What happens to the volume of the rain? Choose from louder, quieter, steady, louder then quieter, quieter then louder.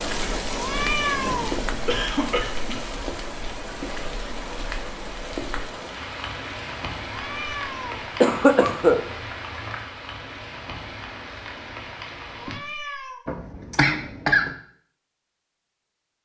quieter.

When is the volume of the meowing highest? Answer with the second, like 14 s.
1 s.